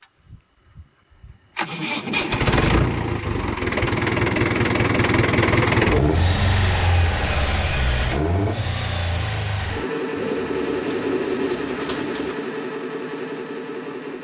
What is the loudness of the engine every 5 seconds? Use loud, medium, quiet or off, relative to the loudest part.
loud, loud, medium.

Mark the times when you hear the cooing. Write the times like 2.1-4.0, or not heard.
10.2-12.3.